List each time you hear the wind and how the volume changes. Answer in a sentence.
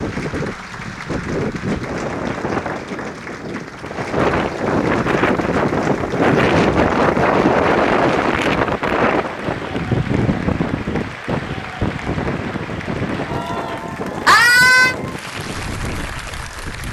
The wind can be heard from 0.0 to 16.8 s, getting louder then quieter.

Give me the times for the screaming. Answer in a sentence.
The screaming can be heard from 14.2 to 14.9 s.